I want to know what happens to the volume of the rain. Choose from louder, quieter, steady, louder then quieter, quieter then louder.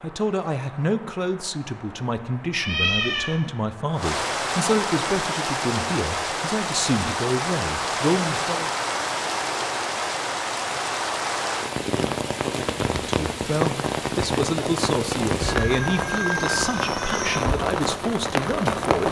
louder.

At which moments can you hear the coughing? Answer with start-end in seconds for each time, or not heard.
not heard.